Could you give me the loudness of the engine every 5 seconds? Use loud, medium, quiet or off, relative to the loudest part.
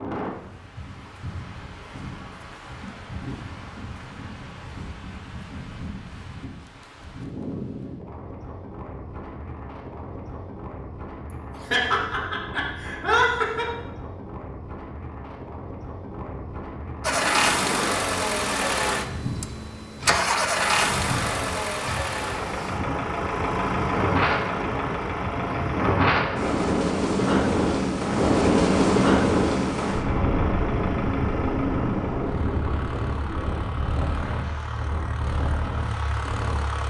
off, off, off, loud, loud, medium, medium, medium.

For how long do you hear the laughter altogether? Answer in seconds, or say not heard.
2 s.